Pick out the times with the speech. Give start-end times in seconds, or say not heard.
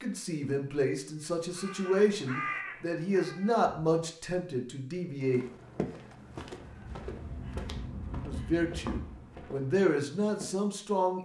0.0-5.5, 8.2-11.2.